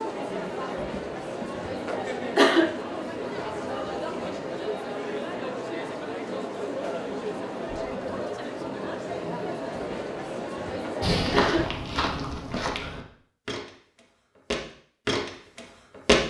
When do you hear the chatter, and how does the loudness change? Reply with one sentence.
You can hear the chatter from 0.0 to 11.7 s, at a steady volume.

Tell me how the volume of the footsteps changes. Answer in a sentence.
The volume of the footsteps goes down, then up.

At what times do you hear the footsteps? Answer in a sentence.
The footsteps can be heard from 11.0 to 16.2 s.